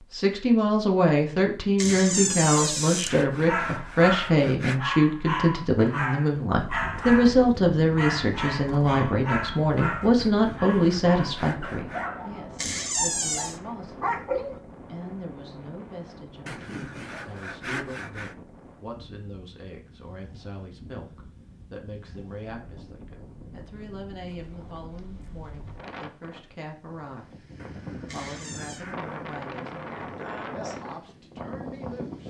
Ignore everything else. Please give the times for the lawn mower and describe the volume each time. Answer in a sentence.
You can't hear the lawn mower here.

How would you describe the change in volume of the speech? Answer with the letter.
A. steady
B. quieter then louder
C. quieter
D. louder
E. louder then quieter
C.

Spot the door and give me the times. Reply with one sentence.
You can hear the door from 1.8 to 3.1 s, from 12.6 to 13.6 s and from 28.1 to 28.9 s.